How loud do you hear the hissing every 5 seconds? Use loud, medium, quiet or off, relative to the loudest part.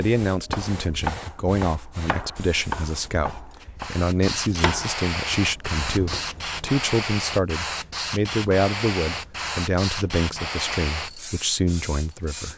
medium, loud, loud.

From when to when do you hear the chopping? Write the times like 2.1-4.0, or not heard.
0.2-6.6.